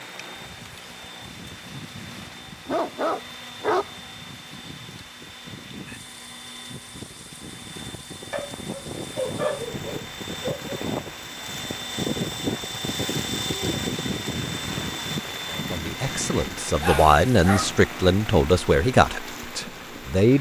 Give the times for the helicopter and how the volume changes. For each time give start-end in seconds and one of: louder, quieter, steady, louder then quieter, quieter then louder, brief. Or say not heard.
0.0-20.3 louder then quieter.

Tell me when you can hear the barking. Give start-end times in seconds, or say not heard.
2.6-4.0, 8.3-10.8, 16.8-17.7.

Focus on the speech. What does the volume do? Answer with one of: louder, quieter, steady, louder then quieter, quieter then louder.
louder then quieter.